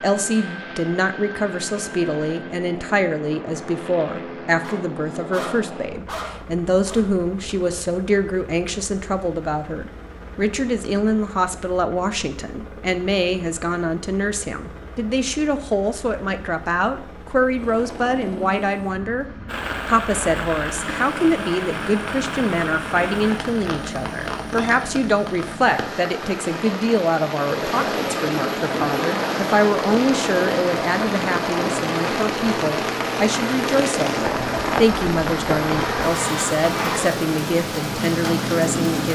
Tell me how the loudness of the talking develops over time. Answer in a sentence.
The loudness of the talking stays about the same.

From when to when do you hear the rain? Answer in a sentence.
You can hear the rain from 19.4 to 39.1 s.